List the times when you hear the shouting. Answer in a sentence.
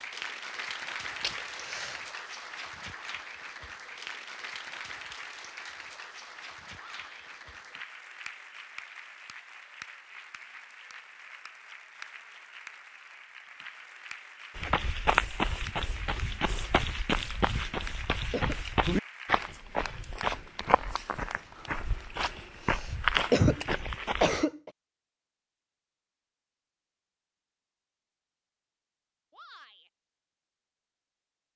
You can hear the shouting from 6.8 to 7.2 s and from 29.3 to 29.9 s.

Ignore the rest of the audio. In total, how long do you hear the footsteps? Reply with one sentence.
You can hear the footsteps for 10 seconds altogether.